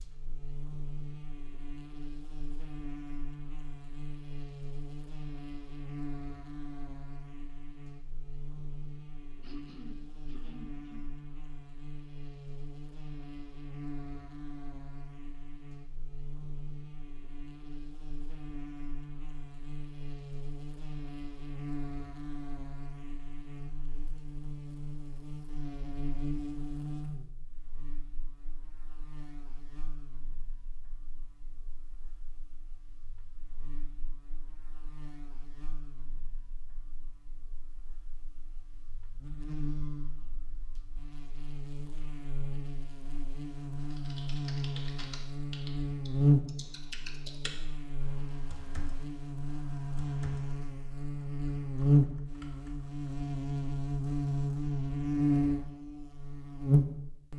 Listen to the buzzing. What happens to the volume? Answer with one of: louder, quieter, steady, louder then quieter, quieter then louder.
louder.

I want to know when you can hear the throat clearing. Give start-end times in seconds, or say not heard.
9.4-11.1.